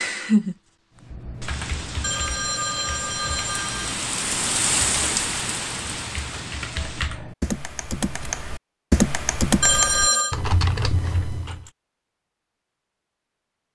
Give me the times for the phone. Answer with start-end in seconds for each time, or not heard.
2.0-4.0, 9.6-10.3.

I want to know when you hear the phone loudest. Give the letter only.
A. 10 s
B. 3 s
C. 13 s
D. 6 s
A.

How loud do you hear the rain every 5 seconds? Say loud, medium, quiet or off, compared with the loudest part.
loud, loud, off.